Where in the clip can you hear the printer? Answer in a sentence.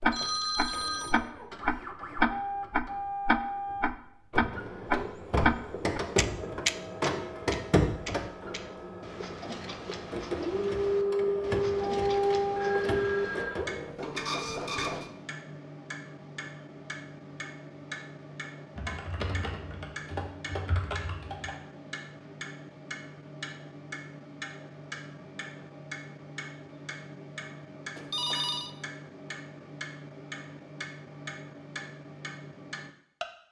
The printer can be heard from 0.0 to 15.1 s.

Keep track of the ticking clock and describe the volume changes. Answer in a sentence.
The loudness of the ticking clock goes down.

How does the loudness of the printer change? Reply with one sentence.
The loudness of the printer goes up.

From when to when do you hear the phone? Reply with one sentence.
You can hear the phone from 0.1 to 1.1 s, from 12.6 to 13.7 s and from 27.9 to 28.8 s.